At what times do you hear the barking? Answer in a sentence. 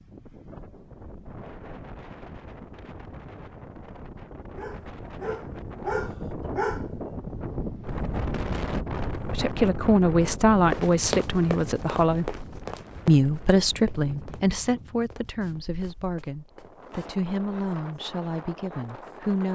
You can hear the barking from 4.5 to 6.8 s.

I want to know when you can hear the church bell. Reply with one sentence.
You can't hear the church bell here.